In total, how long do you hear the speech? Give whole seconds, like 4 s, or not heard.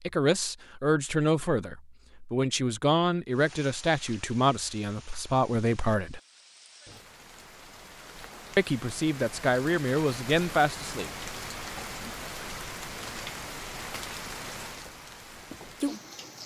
9 s.